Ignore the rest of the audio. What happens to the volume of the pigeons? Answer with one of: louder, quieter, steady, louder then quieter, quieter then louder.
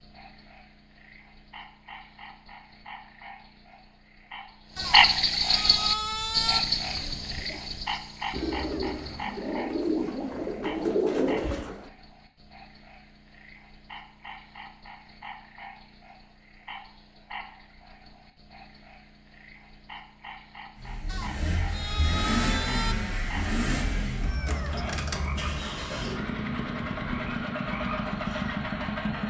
louder.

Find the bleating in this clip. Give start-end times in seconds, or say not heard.
4.8-6.6, 21.1-22.9.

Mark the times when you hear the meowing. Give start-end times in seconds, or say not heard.
8.3-9.2, 24.2-25.7.